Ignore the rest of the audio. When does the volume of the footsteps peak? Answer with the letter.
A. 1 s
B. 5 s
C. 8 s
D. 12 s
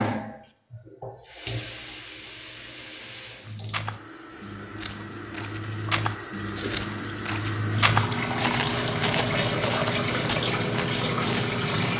C.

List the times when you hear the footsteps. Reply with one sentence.
You can hear the footsteps from 3.4 to 11.9 s.